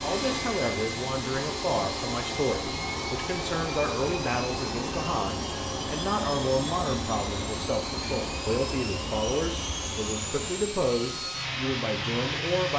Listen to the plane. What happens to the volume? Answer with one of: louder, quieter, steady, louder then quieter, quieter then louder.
steady.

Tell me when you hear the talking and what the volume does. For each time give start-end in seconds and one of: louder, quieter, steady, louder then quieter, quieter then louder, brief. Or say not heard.
0.0-12.7 steady.